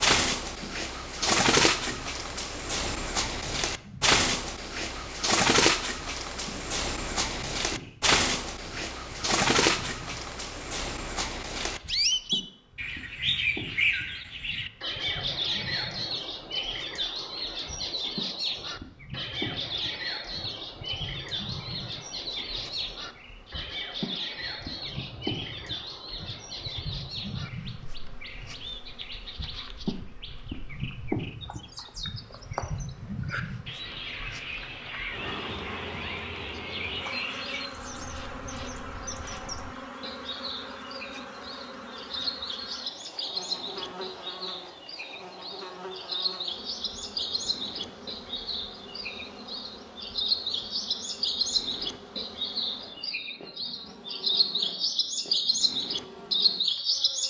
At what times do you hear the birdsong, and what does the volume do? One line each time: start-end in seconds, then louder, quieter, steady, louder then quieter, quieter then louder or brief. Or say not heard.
0.0-57.2 quieter then louder.